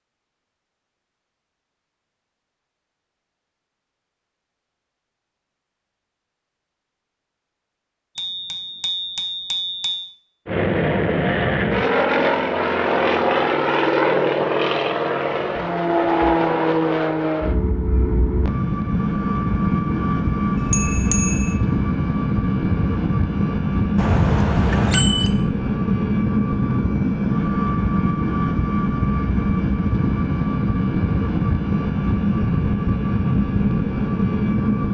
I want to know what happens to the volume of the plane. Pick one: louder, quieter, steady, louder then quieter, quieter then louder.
steady.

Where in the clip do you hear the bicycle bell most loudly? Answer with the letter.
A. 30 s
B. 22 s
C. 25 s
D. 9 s
C.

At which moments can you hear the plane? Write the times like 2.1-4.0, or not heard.
10.4-34.8.